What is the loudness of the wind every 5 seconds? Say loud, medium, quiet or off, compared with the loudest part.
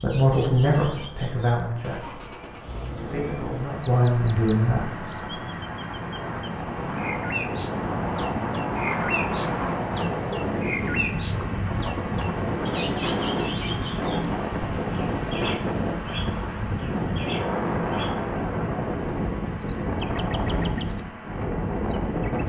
quiet, loud, loud, loud, loud.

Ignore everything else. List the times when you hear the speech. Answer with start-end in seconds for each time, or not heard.
0.0-5.5.